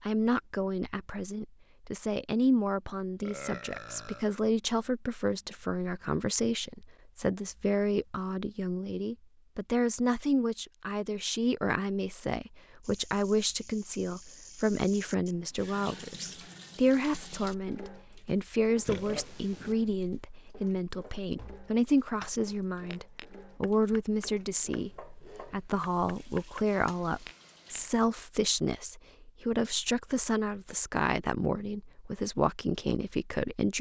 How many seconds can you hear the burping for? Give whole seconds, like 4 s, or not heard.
2 s.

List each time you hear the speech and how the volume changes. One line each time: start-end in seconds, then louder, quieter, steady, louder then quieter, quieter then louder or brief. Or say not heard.
0.0-33.7 steady.